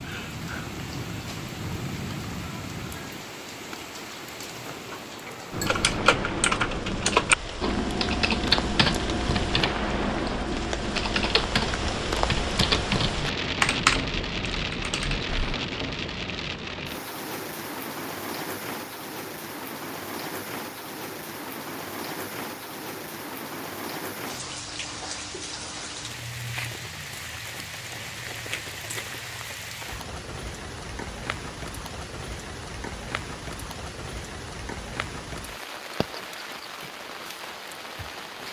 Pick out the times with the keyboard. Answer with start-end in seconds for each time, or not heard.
5.5-15.6.